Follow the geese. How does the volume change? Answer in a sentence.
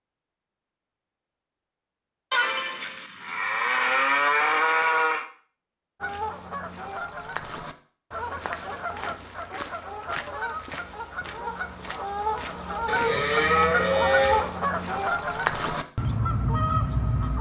The loudness of the geese goes up.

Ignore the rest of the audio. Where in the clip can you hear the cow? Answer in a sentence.
The cow can be heard from 2.3 to 5.2 s and from 12.8 to 14.5 s.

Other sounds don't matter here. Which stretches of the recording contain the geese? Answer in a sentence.
The geese can be heard from 6.0 to 17.3 s.